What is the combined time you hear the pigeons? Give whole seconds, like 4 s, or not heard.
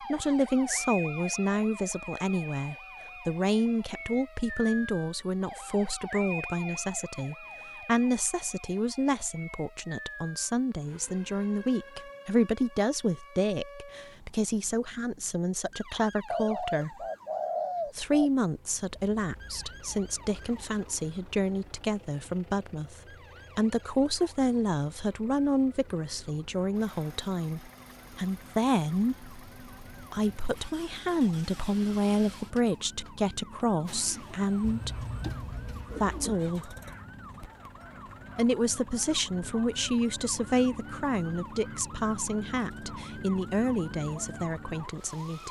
4 s.